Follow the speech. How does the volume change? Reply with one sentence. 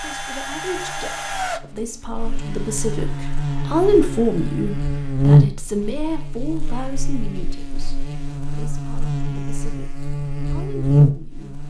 The volume of the speech goes up, then down.